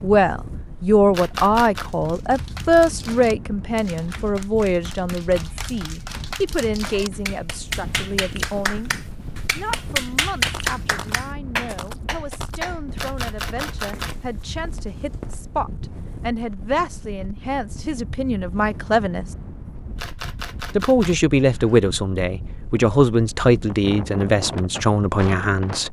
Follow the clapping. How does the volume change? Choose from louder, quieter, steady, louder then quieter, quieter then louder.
louder.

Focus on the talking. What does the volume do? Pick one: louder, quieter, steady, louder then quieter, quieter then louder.
quieter then louder.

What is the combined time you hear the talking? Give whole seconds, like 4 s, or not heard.
24 s.